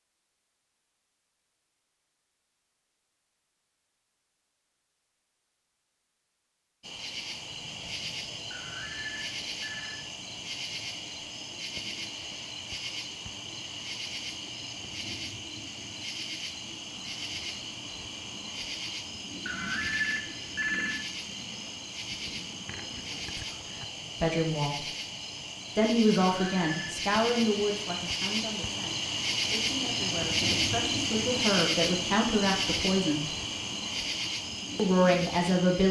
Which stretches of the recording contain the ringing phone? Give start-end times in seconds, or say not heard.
8.5-10.0, 19.4-21.0, 26.2-27.0.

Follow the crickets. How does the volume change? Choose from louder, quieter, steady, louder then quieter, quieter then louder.
louder.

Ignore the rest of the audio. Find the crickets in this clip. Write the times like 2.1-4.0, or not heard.
6.8-35.8.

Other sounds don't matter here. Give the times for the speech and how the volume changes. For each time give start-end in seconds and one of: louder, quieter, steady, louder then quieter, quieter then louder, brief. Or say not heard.
24.2-24.9 brief
25.8-33.2 quieter then louder
34.8-35.8 brief.